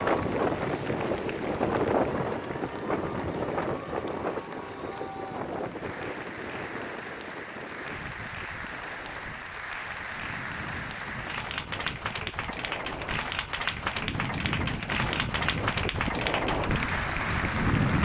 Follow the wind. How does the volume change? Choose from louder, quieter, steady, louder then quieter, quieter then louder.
quieter then louder.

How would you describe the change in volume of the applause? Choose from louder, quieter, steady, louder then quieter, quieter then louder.
louder.